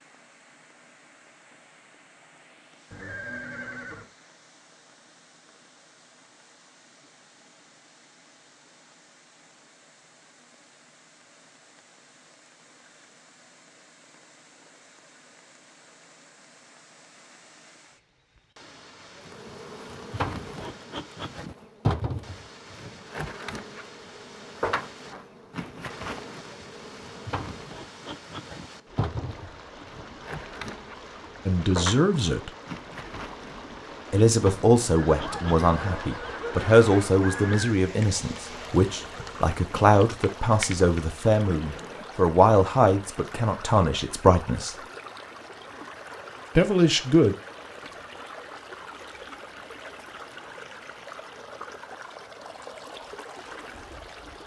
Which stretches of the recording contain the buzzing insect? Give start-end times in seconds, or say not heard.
19.2-42.1.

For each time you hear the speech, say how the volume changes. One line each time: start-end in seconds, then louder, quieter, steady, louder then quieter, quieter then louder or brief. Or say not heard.
31.4-32.5 brief
34.1-44.8 steady
46.5-47.4 brief.